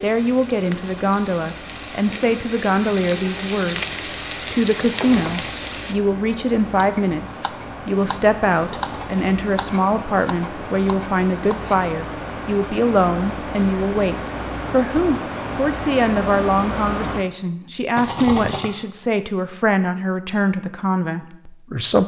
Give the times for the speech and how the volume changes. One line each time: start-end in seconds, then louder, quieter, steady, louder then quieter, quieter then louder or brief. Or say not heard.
0.0-22.0 steady.